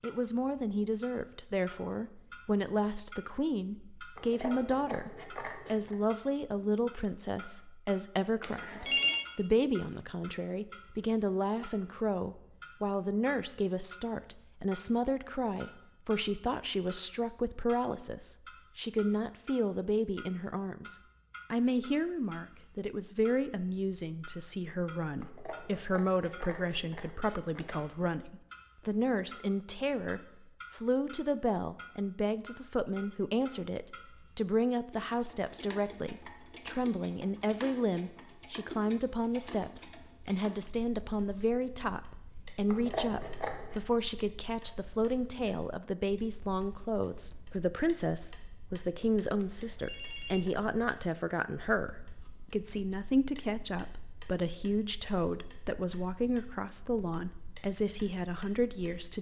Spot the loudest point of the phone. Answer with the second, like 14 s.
9 s.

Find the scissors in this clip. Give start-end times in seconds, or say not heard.
4.2-6.0, 25.2-27.9, 42.6-43.8.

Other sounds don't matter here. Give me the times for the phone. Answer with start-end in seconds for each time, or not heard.
8.4-9.2, 49.5-50.5.